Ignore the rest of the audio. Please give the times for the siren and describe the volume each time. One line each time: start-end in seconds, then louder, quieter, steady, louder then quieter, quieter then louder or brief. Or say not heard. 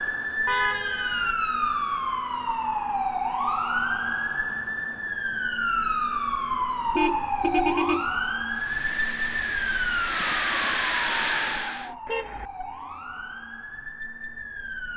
0.0-14.9 quieter.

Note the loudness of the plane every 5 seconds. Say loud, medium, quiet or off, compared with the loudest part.
off, medium, loud.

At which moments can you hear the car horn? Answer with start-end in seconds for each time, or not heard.
0.5-1.4, 7.0-8.1, 12.1-12.5.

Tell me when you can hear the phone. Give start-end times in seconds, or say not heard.
not heard.